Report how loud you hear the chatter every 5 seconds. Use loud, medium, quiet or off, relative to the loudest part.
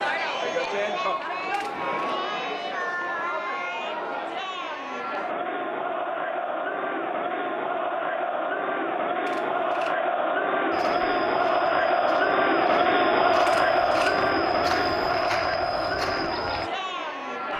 medium, medium, loud, medium.